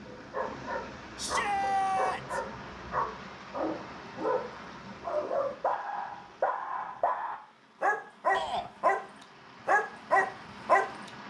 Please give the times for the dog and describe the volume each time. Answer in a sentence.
You can hear the dog from 0.1 to 9.0 s, getting louder; and briefly from 9.7 to 10.8 s.